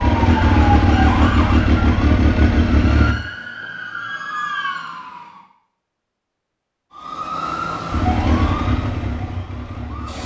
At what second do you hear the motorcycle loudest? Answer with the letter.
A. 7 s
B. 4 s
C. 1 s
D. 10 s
C.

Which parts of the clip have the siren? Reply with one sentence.
You can hear the siren from 0.0 to 5.4 s and from 7.0 to 10.2 s.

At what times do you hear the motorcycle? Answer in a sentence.
The motorcycle can be heard from 0.0 to 3.1 s and from 7.9 to 10.2 s.